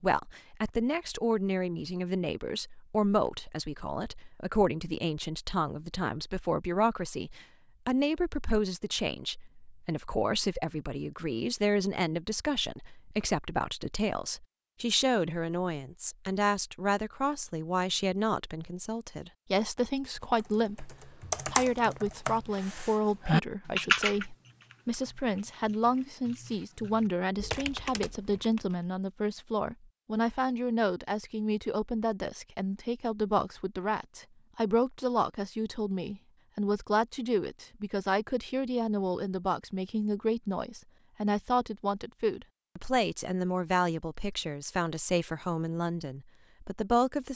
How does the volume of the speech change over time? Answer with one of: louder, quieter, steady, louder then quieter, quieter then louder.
steady.